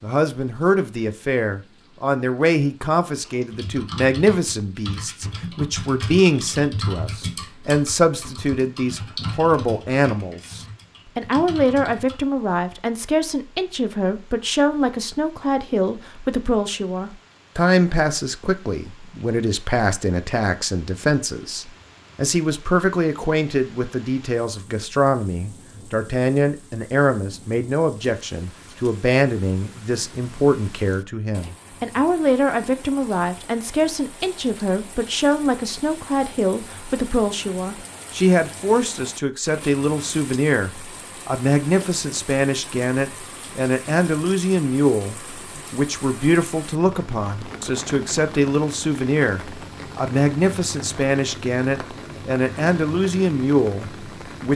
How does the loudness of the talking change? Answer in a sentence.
The loudness of the talking stays about the same.